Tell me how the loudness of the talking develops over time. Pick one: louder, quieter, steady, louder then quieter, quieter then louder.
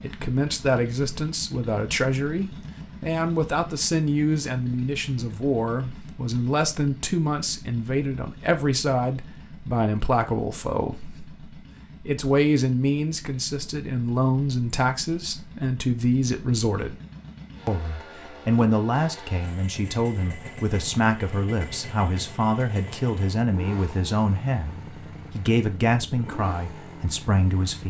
steady.